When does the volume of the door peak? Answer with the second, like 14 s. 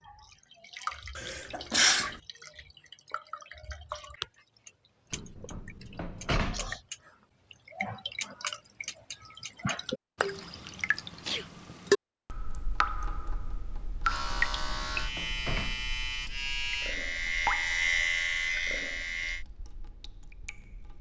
6 s.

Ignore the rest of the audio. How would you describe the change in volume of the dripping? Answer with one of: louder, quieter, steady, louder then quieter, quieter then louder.
louder then quieter.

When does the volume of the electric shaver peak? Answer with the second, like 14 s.
18 s.